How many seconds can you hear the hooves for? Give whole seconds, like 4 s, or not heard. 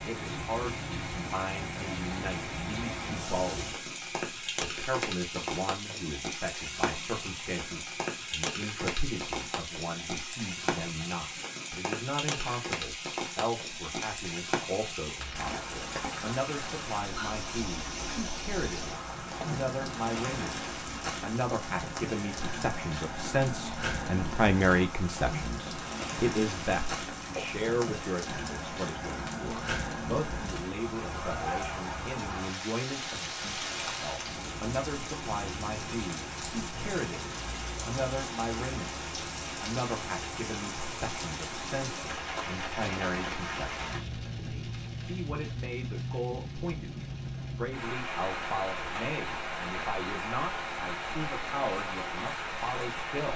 not heard.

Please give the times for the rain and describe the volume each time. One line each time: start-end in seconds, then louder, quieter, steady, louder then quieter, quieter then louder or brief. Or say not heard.
0.0-53.3 steady.